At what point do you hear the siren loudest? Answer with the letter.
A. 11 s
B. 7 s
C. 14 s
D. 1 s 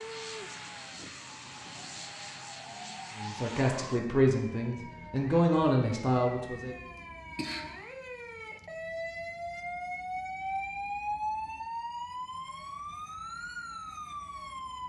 A.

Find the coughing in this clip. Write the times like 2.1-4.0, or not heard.
7.0-7.8.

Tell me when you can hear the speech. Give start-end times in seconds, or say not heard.
3.1-6.8.